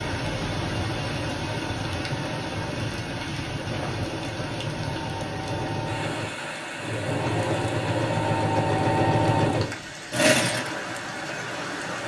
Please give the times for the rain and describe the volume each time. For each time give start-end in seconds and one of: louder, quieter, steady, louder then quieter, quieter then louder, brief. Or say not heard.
0.0-12.0 quieter.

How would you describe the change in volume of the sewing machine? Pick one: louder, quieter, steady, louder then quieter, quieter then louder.
louder.